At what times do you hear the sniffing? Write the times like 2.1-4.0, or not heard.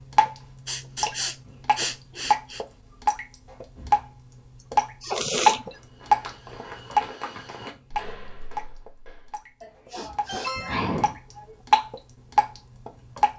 0.7-2.6, 5.0-5.6, 9.6-11.6.